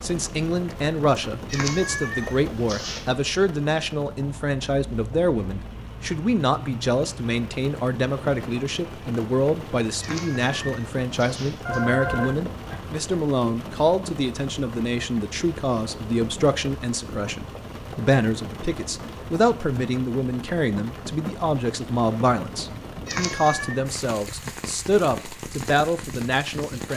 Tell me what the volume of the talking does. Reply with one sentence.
The loudness of the talking stays about the same.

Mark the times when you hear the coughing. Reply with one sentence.
The coughing can't be heard in this clip.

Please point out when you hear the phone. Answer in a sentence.
The phone can be heard from 11.7 to 12.8 s.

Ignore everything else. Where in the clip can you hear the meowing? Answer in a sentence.
You can hear the meowing from 1.4 to 3.1 s, from 9.9 to 11.8 s and from 23.1 to 23.8 s.